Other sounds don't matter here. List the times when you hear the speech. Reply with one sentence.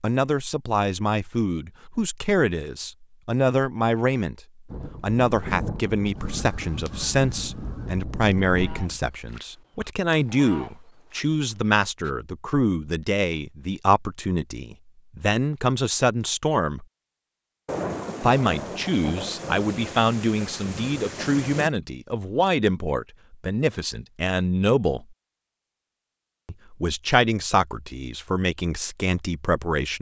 The speech can be heard from 0.0 to 4.4 s, from 5.0 to 16.9 s, from 18.2 to 25.1 s and from 26.4 to 29.9 s.